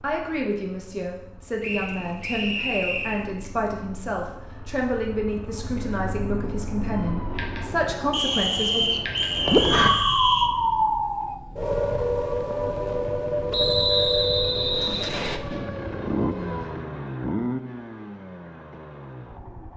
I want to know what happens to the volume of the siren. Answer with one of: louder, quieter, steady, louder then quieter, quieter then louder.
louder then quieter.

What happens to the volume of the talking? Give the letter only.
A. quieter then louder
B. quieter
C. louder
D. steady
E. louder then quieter
D.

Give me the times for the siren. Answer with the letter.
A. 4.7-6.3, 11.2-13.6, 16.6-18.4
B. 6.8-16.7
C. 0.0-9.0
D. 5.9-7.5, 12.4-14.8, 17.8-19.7
B.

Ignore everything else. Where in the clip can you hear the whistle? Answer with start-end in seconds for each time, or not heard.
1.6-3.2, 8.1-10.5, 13.5-15.4.